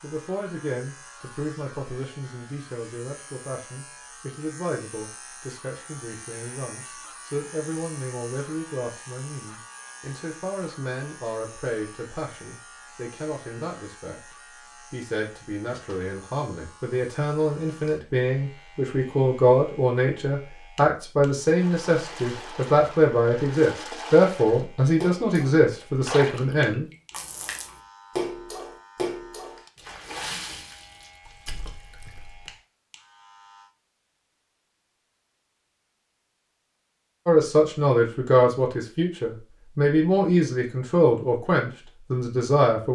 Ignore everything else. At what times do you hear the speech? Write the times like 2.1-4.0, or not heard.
0.0-14.3, 14.9-26.9, 37.2-42.9.